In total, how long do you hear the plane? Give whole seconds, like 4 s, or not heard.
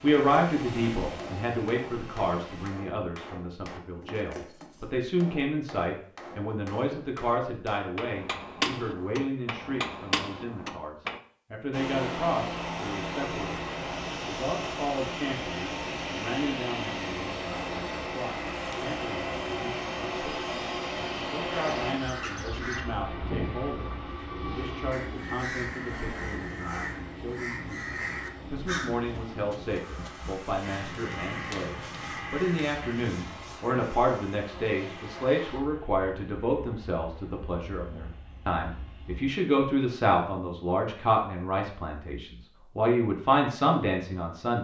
30 s.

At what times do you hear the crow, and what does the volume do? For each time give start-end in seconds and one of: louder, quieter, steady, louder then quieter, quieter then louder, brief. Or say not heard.
21.5-33.1 steady.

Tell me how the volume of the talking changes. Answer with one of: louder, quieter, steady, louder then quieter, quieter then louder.
quieter then louder.